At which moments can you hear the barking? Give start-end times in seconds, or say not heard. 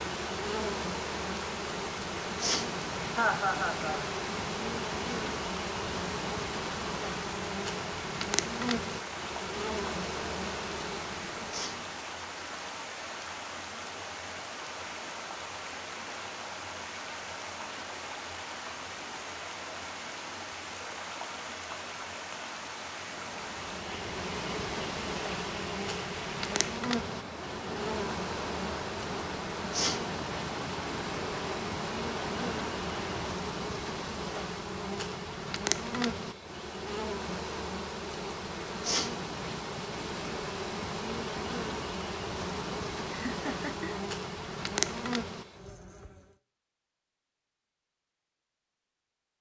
not heard.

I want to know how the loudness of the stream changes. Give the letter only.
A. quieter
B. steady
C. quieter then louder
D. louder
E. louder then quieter
B.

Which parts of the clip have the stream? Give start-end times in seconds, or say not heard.
0.0-33.4.